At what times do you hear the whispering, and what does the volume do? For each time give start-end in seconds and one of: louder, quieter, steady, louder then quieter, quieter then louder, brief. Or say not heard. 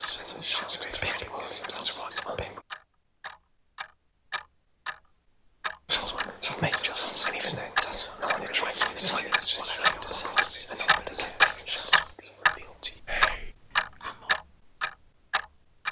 0.0-2.6 brief
5.8-14.3 quieter.